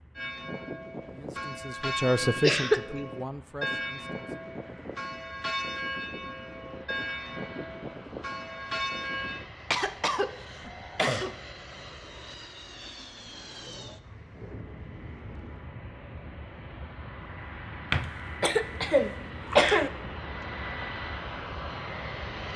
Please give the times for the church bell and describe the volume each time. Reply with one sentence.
You can hear the church bell from 0.1 to 9.4 s, at a steady volume.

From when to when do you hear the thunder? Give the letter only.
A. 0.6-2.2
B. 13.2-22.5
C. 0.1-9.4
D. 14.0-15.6
D.